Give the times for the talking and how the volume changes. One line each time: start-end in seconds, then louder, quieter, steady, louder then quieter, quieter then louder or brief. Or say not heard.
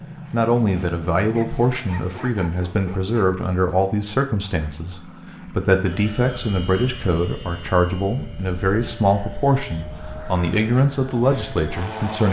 0.3-12.2 steady.